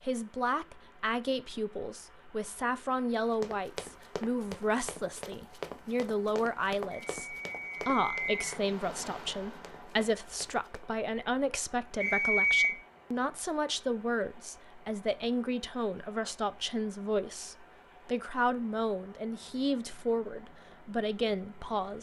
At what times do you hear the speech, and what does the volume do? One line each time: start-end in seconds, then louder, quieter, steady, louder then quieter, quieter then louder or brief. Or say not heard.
0.0-21.9 steady.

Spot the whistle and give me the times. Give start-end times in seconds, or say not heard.
6.9-8.5, 12.0-12.7.